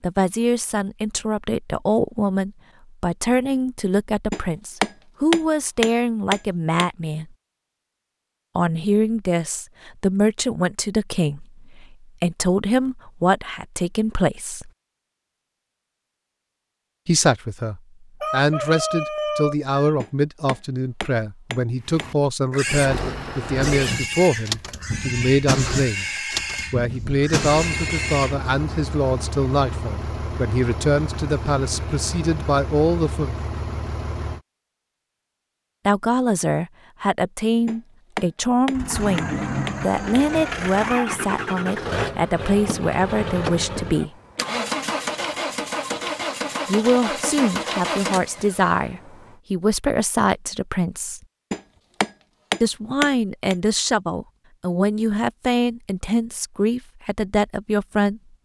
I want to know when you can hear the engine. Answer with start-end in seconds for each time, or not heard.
22.6-34.4, 38.7-49.4.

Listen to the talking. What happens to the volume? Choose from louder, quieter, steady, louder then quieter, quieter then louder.
steady.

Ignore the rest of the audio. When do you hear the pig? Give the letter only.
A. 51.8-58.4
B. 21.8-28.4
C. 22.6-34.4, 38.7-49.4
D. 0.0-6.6
B.